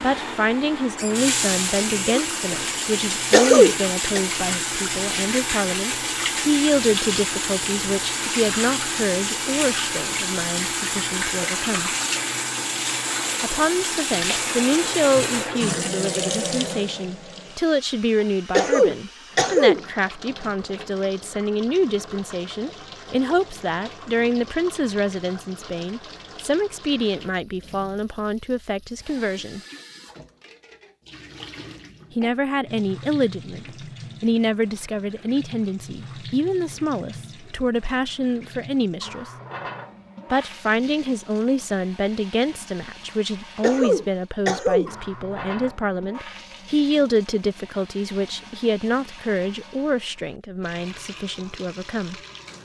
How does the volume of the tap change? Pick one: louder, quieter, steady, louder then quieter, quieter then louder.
quieter.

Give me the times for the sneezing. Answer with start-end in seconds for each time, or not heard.
3.3-4.2, 18.5-19.8, 43.6-44.9.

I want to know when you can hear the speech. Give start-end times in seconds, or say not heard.
0.0-11.9, 13.4-29.6, 32.1-39.2, 40.3-52.1.